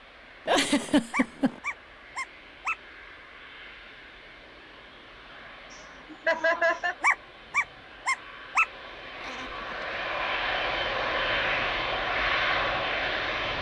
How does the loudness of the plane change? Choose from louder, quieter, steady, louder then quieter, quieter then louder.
louder.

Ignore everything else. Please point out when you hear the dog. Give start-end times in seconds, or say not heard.
1.1-2.8, 7.0-8.7.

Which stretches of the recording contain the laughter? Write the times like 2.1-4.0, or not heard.
0.5-1.6, 6.1-7.0, 9.2-10.1.